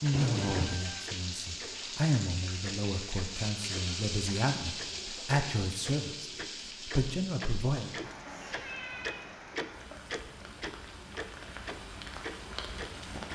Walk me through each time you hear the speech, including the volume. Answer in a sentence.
The speech can be heard from 0.0 to 7.9 s, getting louder.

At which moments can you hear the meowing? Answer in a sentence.
The meowing can be heard from 0.1 to 0.8 s and from 8.2 to 9.2 s.